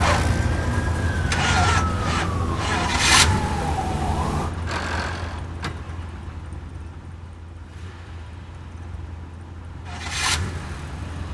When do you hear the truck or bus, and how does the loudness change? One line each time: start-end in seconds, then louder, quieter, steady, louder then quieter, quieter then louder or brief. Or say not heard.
0.0-11.2 quieter then louder.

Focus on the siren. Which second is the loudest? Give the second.
4 s.